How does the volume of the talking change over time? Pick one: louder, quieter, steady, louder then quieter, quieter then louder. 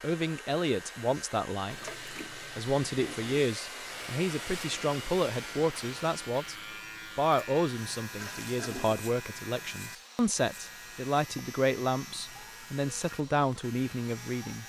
steady.